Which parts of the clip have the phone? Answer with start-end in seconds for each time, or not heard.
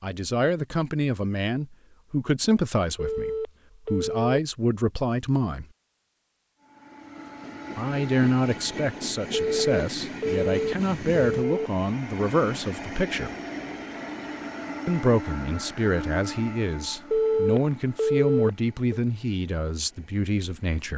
3.0-4.3, 9.3-11.7, 17.1-19.0.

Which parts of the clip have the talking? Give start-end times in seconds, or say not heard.
0.0-5.7, 7.8-13.3, 14.8-20.9.